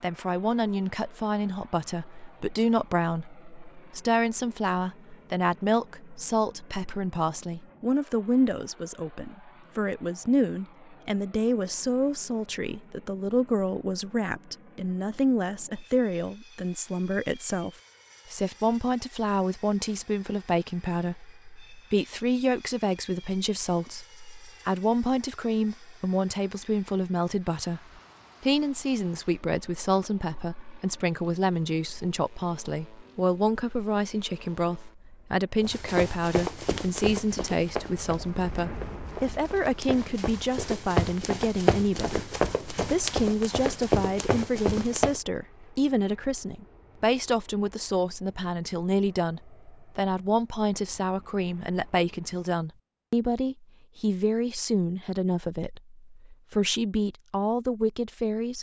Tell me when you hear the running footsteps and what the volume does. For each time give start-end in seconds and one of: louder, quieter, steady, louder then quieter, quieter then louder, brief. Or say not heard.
35.6-45.2 quieter then louder.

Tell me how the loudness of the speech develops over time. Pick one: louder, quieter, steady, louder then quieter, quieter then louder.
steady.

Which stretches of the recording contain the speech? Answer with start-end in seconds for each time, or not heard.
0.0-17.7, 18.3-27.8, 28.4-58.5.